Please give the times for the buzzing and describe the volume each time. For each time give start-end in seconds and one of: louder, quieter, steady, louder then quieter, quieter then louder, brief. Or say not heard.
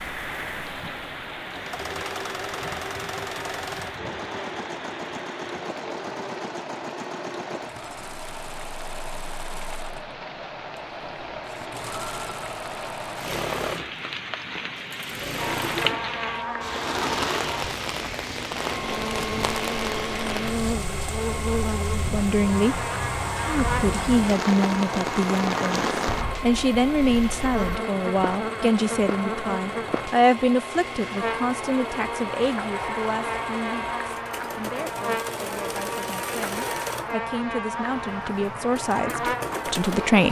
15.3-40.2 steady.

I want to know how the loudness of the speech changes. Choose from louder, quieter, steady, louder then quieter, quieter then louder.
quieter then louder.